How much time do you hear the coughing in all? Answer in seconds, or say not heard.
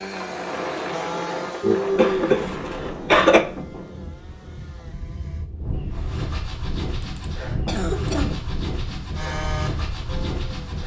3 s.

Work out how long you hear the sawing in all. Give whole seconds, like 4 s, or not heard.
7 s.